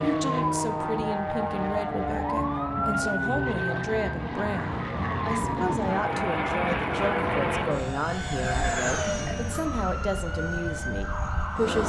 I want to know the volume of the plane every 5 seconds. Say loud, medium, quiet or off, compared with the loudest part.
loud, loud, medium.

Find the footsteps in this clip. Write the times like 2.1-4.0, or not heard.
not heard.